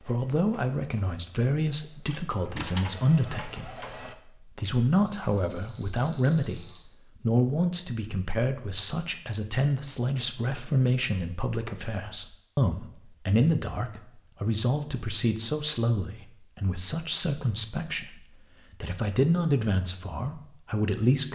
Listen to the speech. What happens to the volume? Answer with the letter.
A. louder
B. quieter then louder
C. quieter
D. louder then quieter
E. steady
E.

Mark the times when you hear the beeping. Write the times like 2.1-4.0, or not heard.
5.2-6.8.